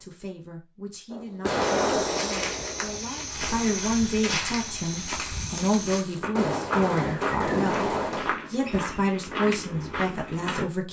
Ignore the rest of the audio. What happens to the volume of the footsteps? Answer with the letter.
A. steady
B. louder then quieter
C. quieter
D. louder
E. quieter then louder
A.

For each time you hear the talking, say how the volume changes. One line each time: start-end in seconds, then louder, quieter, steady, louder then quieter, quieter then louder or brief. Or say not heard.
0.0-10.8 louder.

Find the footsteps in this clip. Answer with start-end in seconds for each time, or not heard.
1.6-10.7.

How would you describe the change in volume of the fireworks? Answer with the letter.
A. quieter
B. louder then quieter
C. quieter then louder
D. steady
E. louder
C.